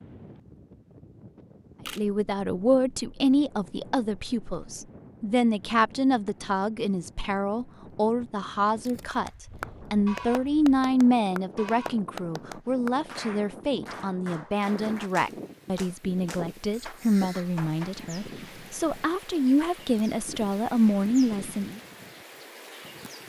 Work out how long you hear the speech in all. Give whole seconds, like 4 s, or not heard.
19 s.